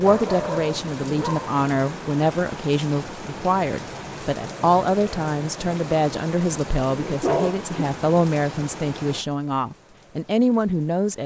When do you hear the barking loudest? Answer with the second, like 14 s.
7 s.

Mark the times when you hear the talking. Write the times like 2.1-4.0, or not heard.
0.0-11.2.